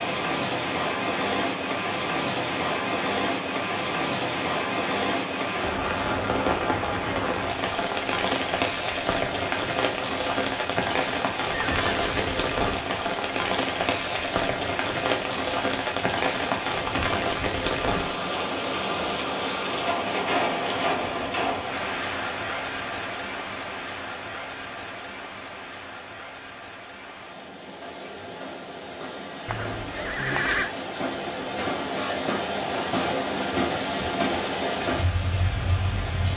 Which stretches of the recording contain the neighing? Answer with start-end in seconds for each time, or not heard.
11.7-12.3, 29.4-30.8.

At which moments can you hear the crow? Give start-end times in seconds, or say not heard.
not heard.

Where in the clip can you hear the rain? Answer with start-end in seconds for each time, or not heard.
0.0-36.3.